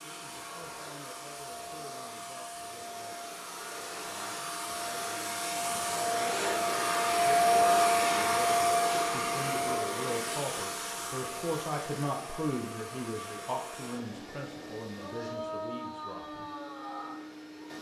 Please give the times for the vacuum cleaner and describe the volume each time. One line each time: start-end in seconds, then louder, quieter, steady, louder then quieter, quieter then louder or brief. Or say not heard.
0.0-17.7 louder then quieter.